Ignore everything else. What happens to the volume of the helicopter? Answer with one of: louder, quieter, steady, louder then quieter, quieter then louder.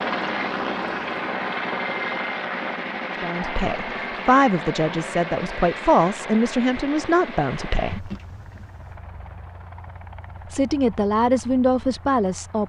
quieter.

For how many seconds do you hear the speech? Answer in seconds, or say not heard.
7 s.